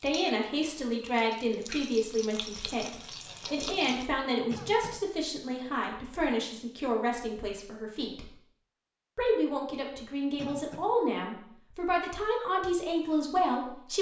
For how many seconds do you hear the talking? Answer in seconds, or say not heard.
13 s.